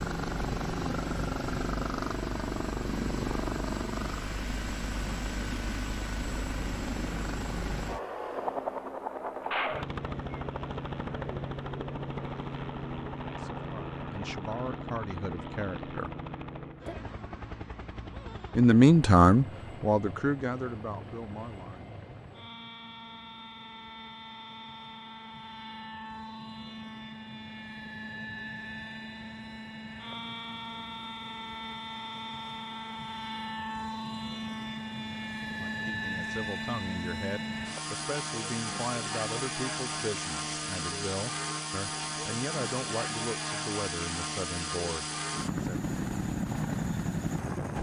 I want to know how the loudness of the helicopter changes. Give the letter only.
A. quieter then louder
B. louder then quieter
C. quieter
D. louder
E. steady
A.